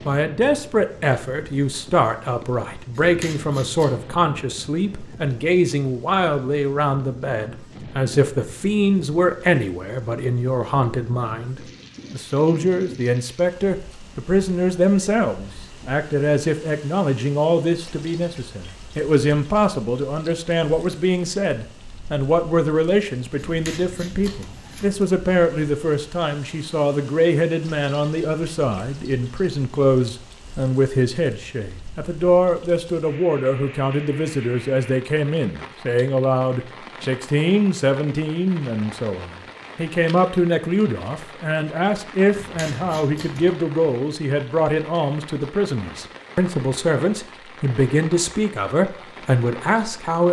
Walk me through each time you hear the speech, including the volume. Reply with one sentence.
You can hear the speech from 0.1 to 50.2 s, at a steady volume.